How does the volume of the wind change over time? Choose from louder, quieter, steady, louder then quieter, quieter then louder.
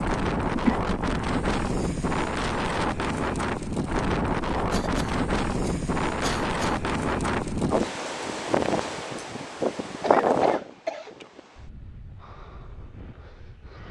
quieter.